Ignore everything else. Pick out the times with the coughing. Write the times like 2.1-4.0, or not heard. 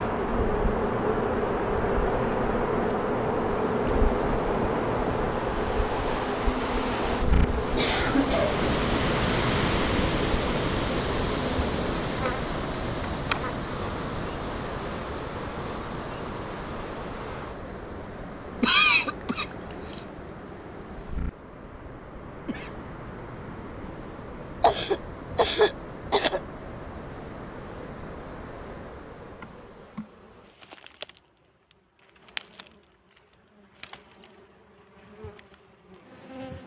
7.8-8.6, 18.6-20.0, 24.6-26.4.